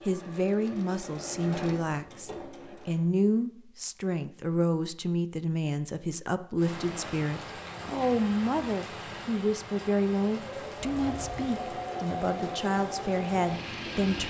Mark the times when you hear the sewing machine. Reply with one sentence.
The sewing machine can be heard from 0.0 to 3.1 s and from 10.2 to 14.2 s.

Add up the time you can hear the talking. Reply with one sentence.
You can hear the talking for 14 seconds altogether.